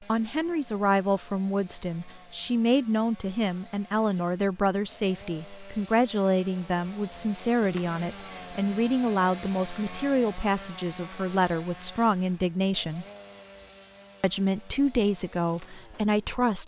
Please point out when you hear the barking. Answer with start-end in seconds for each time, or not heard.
not heard.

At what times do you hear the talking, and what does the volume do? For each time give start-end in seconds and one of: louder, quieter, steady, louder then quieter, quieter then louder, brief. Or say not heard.
0.0-13.1 steady
14.2-16.6 brief.